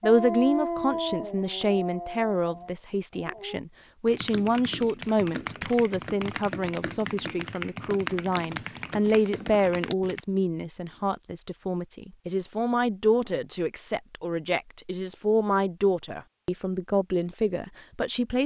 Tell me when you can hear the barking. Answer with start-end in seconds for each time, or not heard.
0.0-3.6.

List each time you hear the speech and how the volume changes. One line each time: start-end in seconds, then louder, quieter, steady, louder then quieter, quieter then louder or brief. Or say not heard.
0.0-18.4 steady.